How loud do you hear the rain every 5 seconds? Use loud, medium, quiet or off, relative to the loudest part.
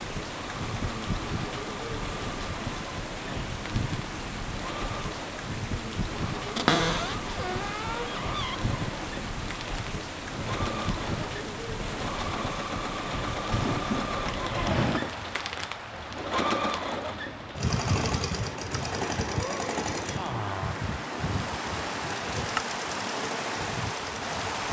loud, loud, loud, medium, loud.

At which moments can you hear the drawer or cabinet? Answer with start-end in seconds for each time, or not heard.
6.5-8.6, 13.5-15.1.